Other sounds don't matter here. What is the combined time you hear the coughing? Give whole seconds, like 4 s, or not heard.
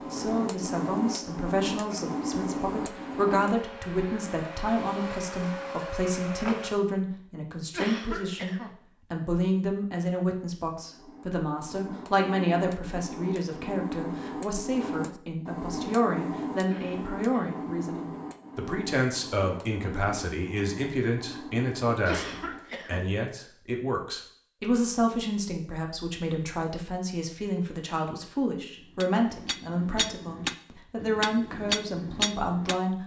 3 s.